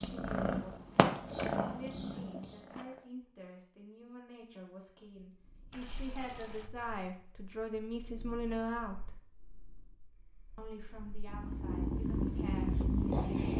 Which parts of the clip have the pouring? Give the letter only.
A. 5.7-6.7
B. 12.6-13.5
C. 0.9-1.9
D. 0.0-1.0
A.